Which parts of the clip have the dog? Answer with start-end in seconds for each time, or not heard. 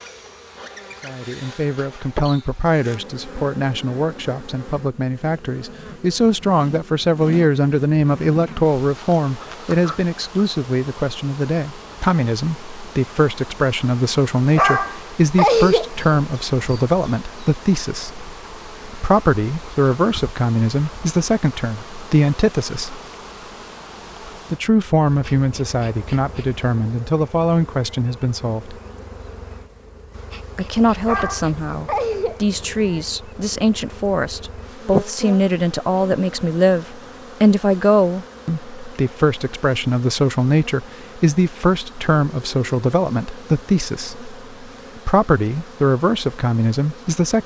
14.6-16.2, 31.1-33.0.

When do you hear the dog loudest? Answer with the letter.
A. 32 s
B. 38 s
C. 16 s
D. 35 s
C.